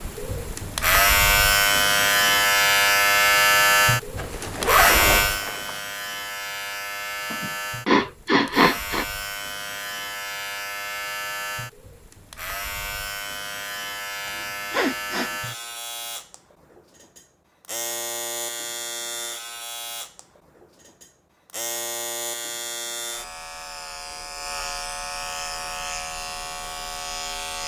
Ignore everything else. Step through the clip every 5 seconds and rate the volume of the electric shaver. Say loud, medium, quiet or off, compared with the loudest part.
loud, medium, quiet, quiet, quiet, quiet.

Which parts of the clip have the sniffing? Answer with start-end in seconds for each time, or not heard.
7.3-9.1, 14.2-15.3.